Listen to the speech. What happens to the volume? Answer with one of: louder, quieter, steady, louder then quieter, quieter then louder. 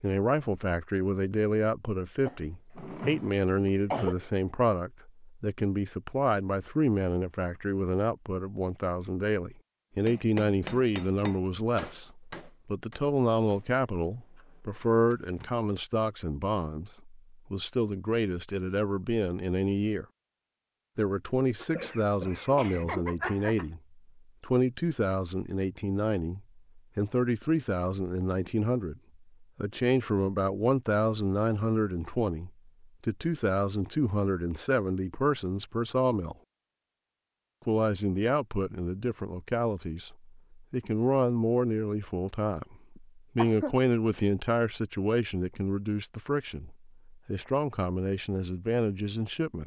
steady.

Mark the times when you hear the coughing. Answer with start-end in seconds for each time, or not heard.
2.2-4.2, 21.6-23.6, 43.0-43.8.